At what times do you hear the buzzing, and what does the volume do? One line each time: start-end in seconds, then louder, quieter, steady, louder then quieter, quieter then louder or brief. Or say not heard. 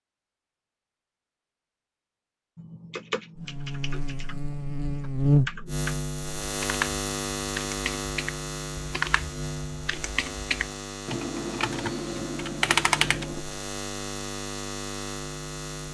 3.4-15.8 quieter.